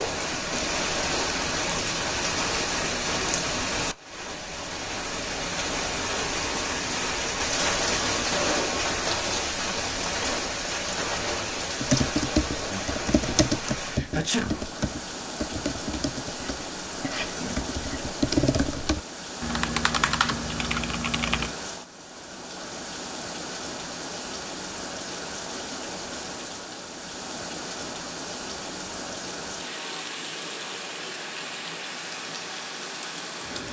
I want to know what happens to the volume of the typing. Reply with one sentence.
The loudness of the typing goes down, then up.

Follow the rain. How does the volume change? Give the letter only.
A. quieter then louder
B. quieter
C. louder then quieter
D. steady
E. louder
B.